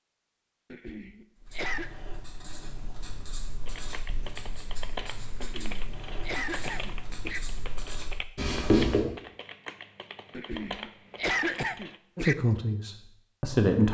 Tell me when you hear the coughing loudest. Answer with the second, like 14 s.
11 s.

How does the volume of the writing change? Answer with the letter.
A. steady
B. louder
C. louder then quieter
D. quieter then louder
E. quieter
B.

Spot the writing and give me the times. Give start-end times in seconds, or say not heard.
1.4-9.1.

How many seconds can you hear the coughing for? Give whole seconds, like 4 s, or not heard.
5 s.